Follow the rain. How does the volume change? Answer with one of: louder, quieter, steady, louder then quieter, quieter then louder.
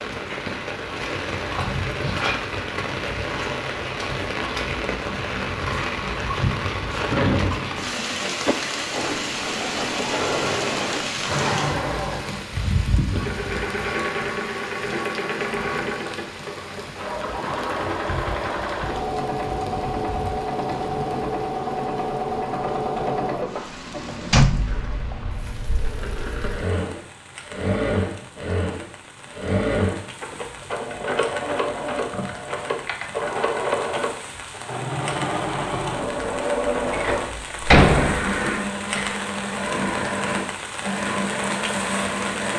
quieter then louder.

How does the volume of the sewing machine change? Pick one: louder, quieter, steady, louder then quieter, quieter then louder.
steady.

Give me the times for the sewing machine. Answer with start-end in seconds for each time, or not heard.
8.9-42.5.